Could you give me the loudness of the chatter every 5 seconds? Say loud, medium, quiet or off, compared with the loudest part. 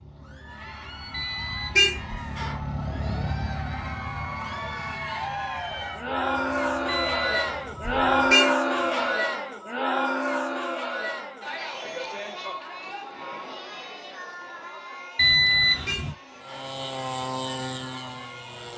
quiet, loud, medium, quiet.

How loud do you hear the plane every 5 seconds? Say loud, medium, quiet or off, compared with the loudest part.
loud, quiet, off, loud.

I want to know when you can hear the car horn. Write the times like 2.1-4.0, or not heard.
1.8-2.5, 8.3-9.1, 15.8-16.6.